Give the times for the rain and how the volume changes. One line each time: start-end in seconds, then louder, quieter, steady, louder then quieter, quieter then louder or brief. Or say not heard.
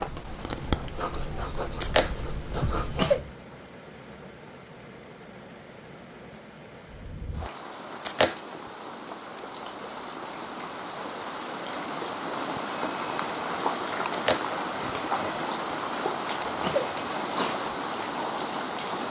0.2-19.0 louder.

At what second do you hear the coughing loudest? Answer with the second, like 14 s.
3 s.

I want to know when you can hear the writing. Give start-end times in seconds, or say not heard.
0.0-3.2.